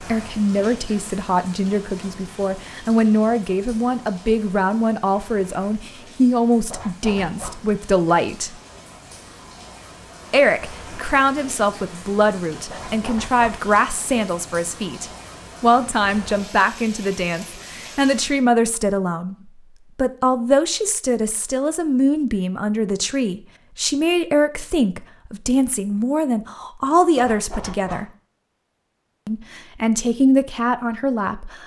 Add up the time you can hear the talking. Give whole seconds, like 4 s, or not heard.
29 s.